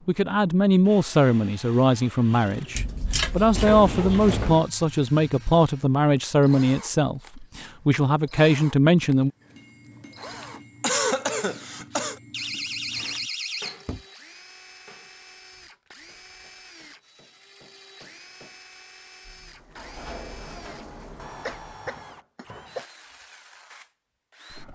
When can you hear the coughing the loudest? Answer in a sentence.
The volume of the coughing peaks at 11 seconds.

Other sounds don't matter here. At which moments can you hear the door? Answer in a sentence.
You can hear the door from 3.5 to 4.7 s, from 12.3 to 14.1 s and from 19.2 to 21.9 s.